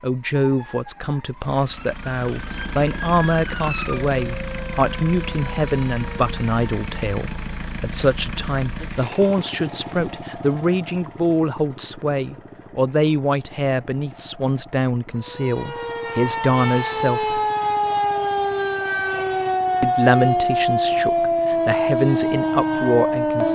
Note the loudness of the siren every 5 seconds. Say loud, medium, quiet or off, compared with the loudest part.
quiet, quiet, off, loud, loud.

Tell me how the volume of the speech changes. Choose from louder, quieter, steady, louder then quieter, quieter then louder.
steady.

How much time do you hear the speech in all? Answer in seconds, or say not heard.
21 s.